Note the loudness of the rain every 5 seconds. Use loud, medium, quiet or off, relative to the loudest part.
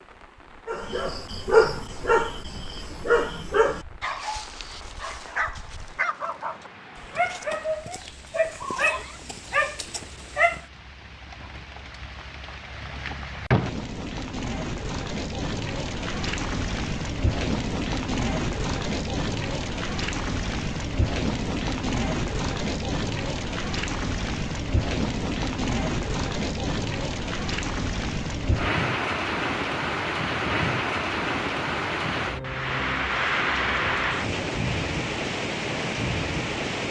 quiet, quiet, medium, loud, loud, loud, loud, loud.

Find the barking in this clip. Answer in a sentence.
You can hear the barking from 0.7 to 10.6 s.